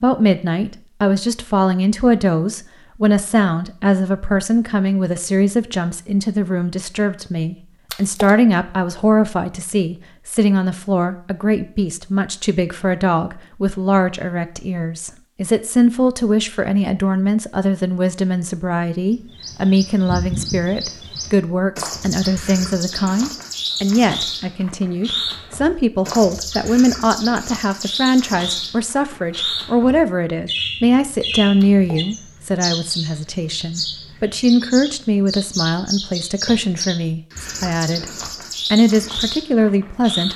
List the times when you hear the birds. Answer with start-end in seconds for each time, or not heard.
19.1-40.3.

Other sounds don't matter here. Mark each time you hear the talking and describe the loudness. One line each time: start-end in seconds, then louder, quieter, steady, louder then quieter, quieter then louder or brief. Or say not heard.
0.0-38.0 steady
38.7-40.3 brief.